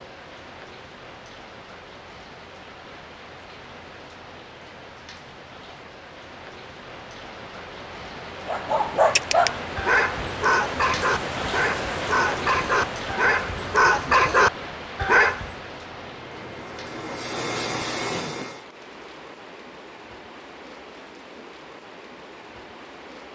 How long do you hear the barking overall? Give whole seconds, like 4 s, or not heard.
7 s.